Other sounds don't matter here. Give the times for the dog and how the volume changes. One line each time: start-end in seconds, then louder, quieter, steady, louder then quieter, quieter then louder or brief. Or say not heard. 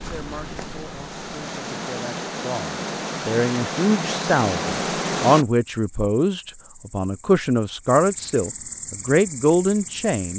not heard.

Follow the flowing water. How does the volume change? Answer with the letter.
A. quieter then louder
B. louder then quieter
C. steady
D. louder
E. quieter
D.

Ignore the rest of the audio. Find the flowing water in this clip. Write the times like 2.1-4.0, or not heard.
0.0-5.5.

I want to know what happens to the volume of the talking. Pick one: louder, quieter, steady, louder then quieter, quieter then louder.
louder.